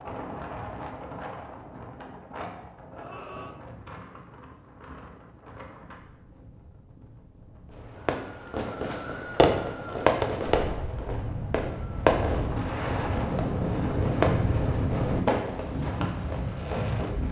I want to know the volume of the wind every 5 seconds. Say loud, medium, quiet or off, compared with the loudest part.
medium, quiet, loud, loud.